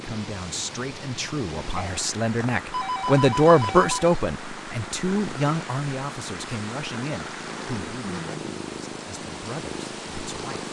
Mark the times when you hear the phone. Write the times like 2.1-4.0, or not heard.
1.8-4.2.